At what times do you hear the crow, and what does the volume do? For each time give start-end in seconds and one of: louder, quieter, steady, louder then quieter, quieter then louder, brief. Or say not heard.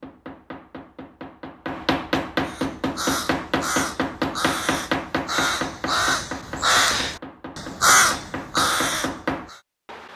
2.5-9.6 louder.